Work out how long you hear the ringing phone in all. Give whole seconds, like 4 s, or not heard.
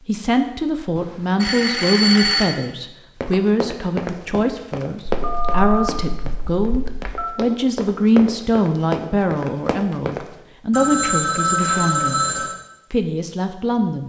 6 s.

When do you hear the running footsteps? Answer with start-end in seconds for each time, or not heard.
3.2-10.2.